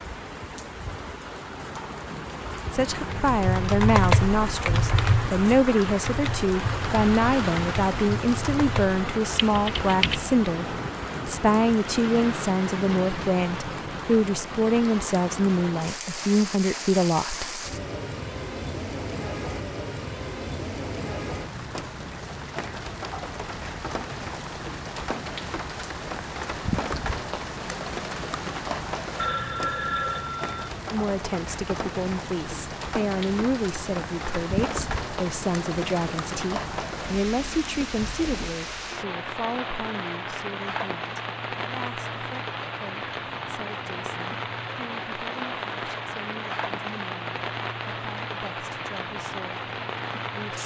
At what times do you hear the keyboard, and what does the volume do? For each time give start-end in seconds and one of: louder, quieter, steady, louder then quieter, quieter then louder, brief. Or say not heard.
3.1-10.3 quieter.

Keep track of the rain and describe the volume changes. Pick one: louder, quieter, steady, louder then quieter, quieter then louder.
steady.